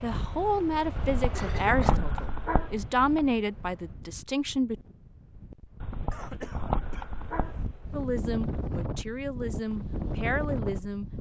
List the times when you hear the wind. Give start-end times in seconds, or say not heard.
0.0-11.1.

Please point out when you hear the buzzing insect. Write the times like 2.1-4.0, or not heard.
not heard.